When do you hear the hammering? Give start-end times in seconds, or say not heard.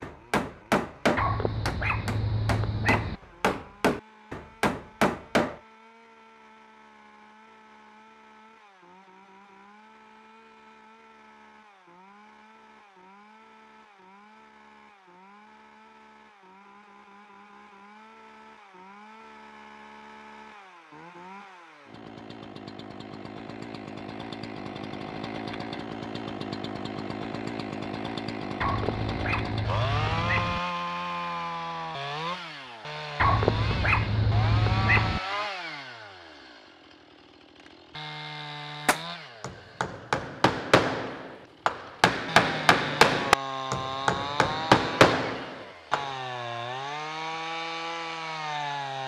0.0-5.6, 38.9-46.1.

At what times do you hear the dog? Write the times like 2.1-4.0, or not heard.
1.1-3.2, 28.6-30.6, 33.1-35.2.